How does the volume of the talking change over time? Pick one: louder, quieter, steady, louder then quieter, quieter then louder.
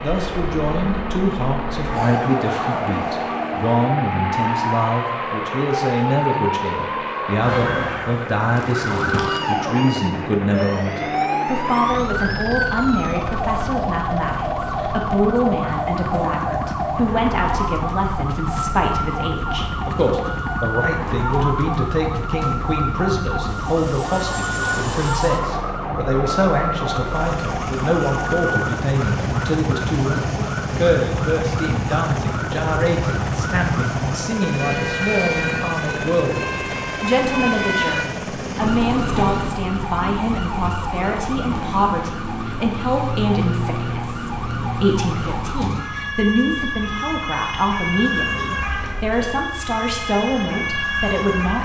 steady.